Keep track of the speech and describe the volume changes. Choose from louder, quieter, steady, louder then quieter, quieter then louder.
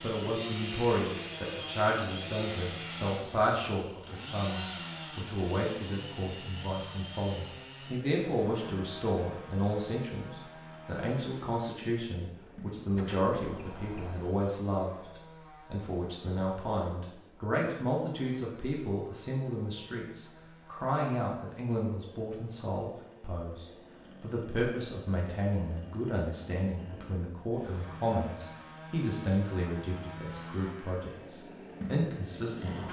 steady.